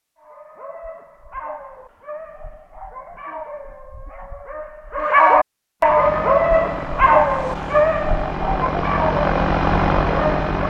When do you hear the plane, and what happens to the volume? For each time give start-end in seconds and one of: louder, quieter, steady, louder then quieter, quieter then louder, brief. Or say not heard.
5.8-10.6 louder.